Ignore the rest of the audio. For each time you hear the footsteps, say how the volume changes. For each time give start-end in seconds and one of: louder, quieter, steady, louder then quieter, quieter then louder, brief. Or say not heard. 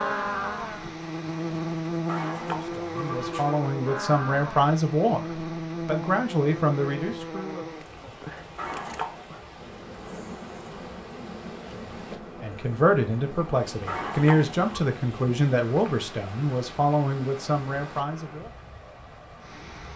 not heard.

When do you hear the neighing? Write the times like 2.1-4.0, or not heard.
2.0-3.6, 8.6-9.2, 13.8-14.8.